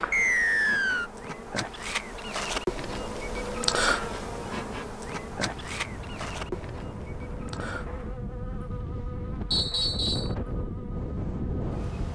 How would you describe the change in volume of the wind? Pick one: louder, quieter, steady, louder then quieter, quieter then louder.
louder.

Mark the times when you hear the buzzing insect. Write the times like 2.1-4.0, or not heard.
0.0-11.8.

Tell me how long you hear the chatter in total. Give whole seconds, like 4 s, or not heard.
not heard.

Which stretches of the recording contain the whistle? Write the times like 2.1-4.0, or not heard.
0.1-1.1, 9.5-10.3.